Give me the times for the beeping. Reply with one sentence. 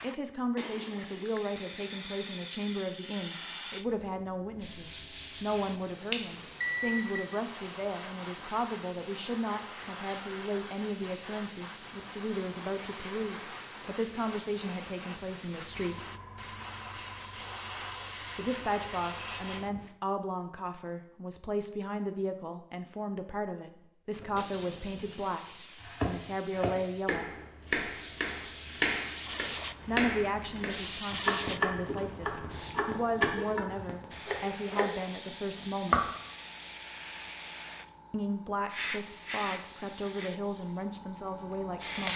The beeping can be heard from 6.1 to 7.2 s.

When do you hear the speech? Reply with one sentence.
The speech can be heard from 0.0 to 16.0 s, from 18.4 to 27.3 s, from 29.9 to 36.1 s and from 38.1 to 42.1 s.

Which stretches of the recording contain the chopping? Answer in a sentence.
You can hear the chopping from 25.8 to 36.0 s.